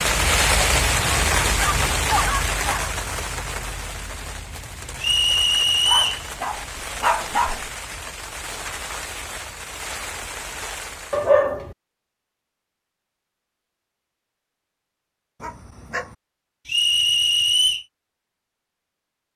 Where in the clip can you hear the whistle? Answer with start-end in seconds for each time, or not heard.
5.0-6.2, 16.6-17.9.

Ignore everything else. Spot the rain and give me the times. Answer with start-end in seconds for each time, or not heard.
0.0-11.3.